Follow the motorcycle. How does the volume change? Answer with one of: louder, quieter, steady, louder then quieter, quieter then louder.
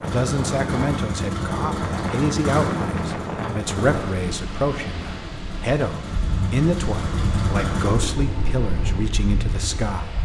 quieter then louder.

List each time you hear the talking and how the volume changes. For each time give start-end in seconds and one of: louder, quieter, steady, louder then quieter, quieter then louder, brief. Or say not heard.
0.0-10.2 steady.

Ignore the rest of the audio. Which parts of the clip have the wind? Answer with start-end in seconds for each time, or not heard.
0.0-10.2.